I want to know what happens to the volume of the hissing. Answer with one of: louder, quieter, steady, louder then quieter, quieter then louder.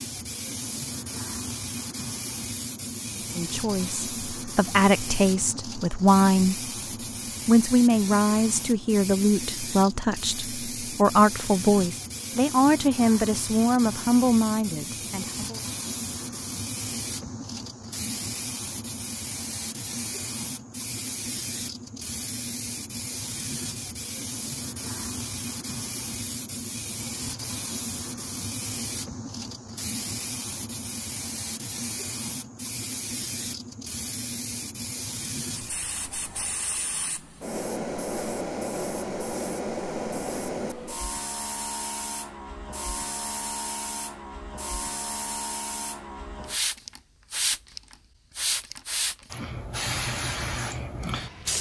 steady.